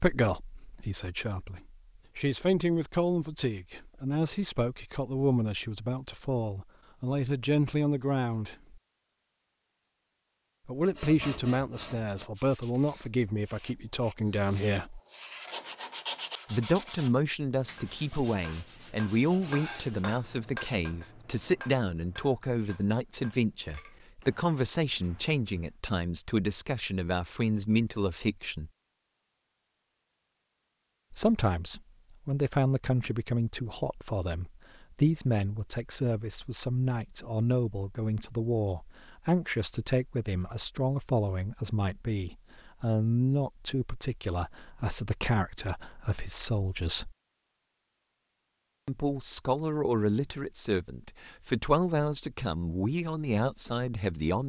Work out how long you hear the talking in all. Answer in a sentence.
The talking can be heard for 47 seconds in total.